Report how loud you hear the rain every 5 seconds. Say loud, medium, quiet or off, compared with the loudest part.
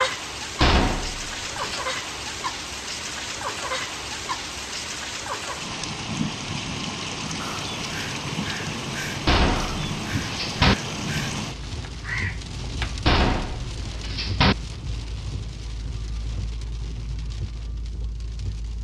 loud, loud, loud, medium.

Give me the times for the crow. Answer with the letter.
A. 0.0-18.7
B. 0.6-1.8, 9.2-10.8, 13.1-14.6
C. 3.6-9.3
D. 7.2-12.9
D.